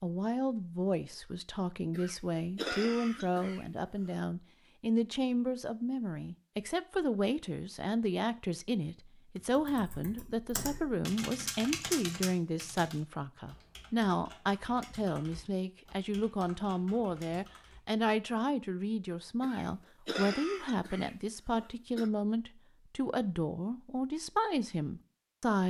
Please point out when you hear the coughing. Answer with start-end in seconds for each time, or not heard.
1.9-4.2, 19.4-22.1.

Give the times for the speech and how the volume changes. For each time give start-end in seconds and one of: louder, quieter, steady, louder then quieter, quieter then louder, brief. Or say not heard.
0.0-25.6 steady.